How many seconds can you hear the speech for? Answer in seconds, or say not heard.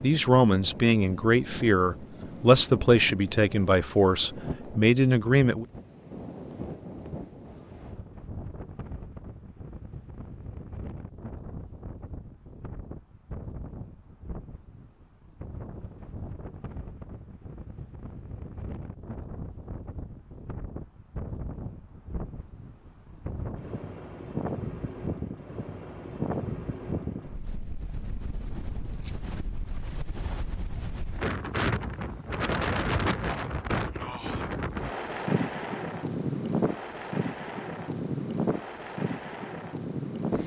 6 s.